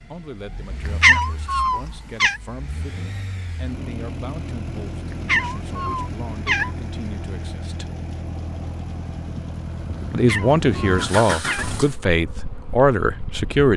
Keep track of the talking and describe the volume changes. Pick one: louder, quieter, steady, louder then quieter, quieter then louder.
louder.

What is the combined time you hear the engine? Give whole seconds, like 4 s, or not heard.
12 s.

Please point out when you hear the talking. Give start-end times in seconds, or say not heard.
0.1-7.8, 10.1-13.7.